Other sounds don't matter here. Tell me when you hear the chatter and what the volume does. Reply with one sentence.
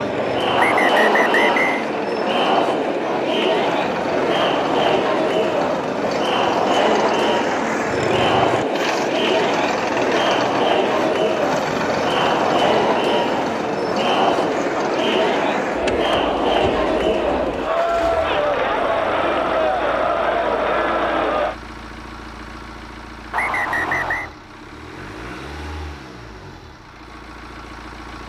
You can hear the chatter from 0.0 to 21.6 s, at a steady volume.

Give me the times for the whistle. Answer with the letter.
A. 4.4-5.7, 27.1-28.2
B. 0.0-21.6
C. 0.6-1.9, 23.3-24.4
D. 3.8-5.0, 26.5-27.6
C.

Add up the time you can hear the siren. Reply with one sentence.
The siren can't be heard in this clip.